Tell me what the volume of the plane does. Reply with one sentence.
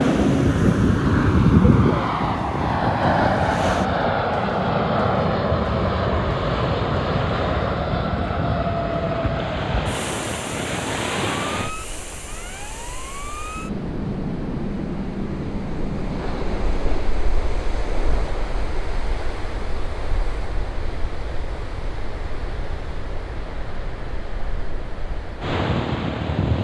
The loudness of the plane goes down, then up.